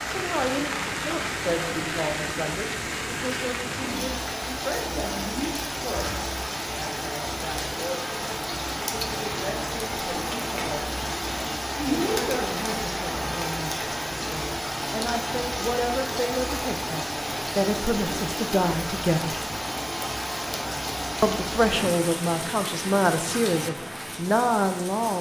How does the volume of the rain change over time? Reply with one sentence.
The volume of the rain stays about the same.